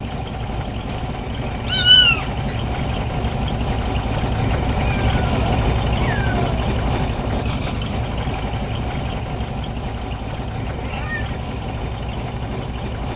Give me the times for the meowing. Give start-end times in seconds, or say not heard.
1.6-2.5, 4.8-6.5, 10.7-11.4.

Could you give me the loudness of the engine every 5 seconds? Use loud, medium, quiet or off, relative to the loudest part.
loud, loud, medium.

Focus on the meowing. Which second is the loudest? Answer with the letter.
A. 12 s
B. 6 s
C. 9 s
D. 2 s
D.